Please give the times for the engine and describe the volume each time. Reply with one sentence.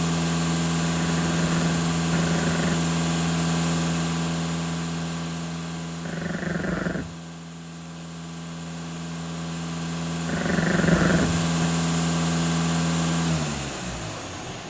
You can hear the engine from 0.0 to 14.6 s, getting quieter then louder.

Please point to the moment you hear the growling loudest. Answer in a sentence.
The loudest moment of the growling is at 11 seconds.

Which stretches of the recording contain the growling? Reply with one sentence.
The growling can be heard from 1.0 to 2.8 s, from 6.0 to 7.2 s and from 10.2 to 11.7 s.